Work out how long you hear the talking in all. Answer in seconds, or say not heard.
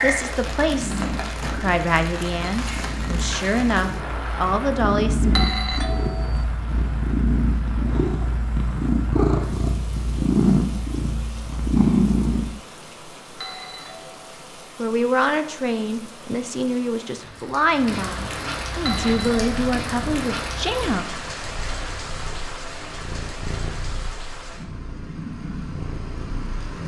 12 s.